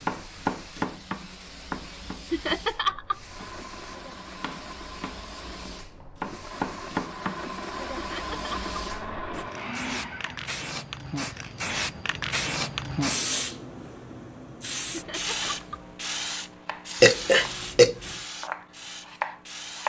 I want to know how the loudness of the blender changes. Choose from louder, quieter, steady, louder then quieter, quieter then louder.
louder.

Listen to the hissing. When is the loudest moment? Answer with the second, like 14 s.
13 s.